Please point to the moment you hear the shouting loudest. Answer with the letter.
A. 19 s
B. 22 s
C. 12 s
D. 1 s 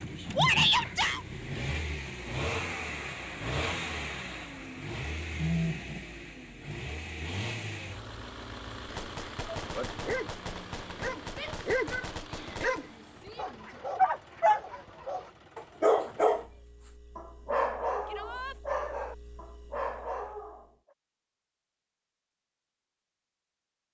D.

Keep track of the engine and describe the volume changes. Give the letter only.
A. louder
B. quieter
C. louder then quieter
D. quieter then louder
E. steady
B.